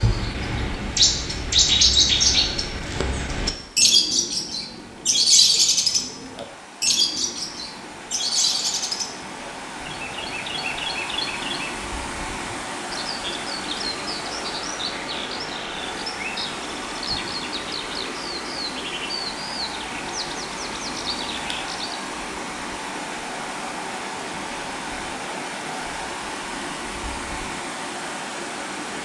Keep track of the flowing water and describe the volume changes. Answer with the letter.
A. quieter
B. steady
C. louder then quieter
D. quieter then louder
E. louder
E.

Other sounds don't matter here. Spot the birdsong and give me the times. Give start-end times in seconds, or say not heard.
0.0-22.0.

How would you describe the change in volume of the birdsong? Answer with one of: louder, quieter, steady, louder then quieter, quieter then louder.
quieter.